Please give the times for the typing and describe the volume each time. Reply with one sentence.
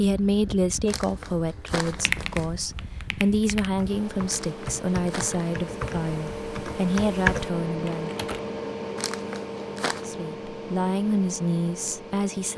The typing can be heard from 1.8 to 8.4 s, getting louder.